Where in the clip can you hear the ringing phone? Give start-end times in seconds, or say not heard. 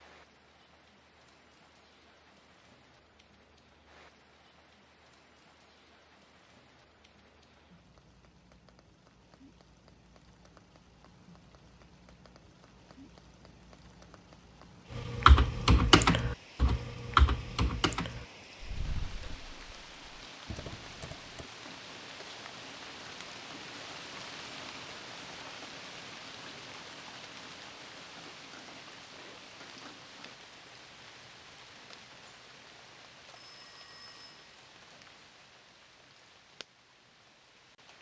33.4-34.4.